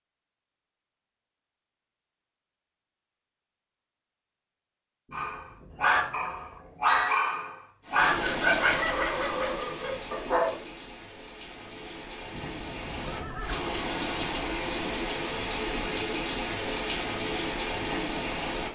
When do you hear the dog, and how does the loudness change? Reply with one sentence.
The dog can be heard from 5.1 to 10.6 s, getting quieter.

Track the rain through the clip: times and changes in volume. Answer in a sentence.
You can hear the rain from 7.8 to 18.7 s, getting quieter then louder.